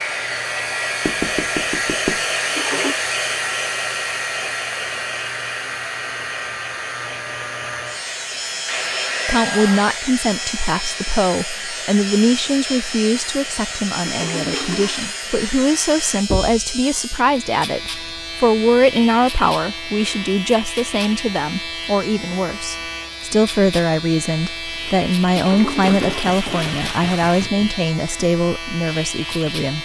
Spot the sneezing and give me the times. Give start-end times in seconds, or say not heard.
not heard.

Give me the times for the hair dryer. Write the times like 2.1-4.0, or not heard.
0.0-16.2.